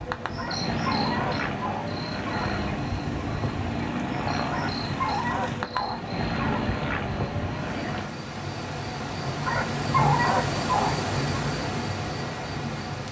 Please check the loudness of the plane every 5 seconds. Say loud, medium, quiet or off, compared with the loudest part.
loud, loud, off.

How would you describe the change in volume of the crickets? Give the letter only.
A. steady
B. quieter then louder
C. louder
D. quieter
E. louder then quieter
C.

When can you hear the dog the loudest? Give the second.
10 s.